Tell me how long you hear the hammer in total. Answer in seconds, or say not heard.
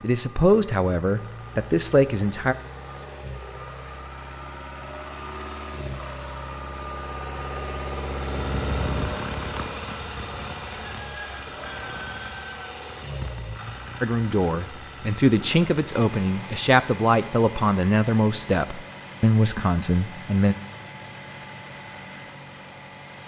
not heard.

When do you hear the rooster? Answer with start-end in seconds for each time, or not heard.
10.7-12.7.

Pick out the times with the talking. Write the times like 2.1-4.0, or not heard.
0.0-2.5, 14.0-20.6.